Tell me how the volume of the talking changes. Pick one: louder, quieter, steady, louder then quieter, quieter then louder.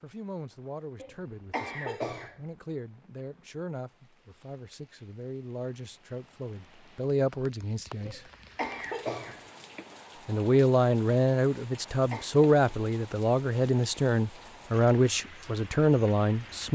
louder.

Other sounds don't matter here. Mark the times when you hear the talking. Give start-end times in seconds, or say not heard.
0.0-8.2, 10.2-16.6.